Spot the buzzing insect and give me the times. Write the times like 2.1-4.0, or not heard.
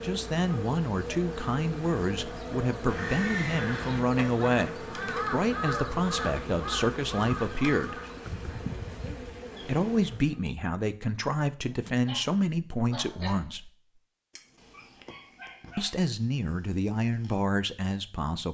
0.0-10.4.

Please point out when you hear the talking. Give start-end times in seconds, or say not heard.
0.0-8.0, 9.6-13.7, 15.8-18.4.